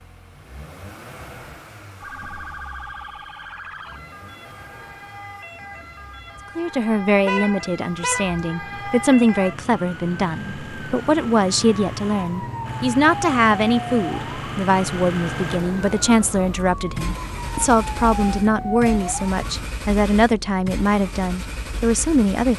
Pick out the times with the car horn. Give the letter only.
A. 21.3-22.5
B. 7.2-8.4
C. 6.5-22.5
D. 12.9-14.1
B.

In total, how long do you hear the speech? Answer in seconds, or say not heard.
16 s.